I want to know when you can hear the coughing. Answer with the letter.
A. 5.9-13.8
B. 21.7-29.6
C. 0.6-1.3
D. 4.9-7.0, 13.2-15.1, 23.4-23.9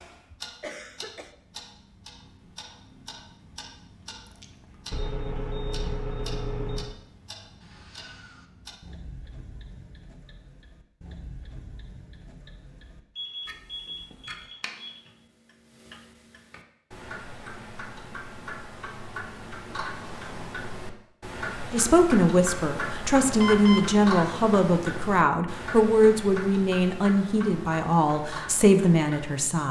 C.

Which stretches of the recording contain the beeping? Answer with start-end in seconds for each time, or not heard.
4.9-7.0, 13.2-15.1, 23.4-23.9.